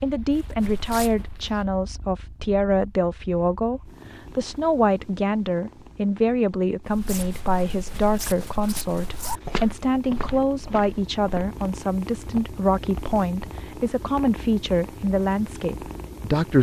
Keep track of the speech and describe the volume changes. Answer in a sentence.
The loudness of the speech stays about the same.